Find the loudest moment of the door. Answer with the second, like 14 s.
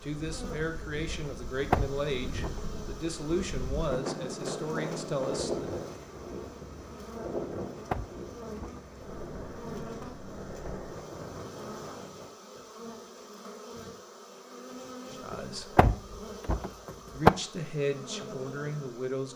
17 s.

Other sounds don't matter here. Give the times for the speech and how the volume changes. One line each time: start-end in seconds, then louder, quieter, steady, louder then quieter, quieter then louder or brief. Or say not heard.
0.0-5.7 steady
15.1-15.8 brief
17.1-19.3 brief.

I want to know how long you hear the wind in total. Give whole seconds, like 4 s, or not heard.
12 s.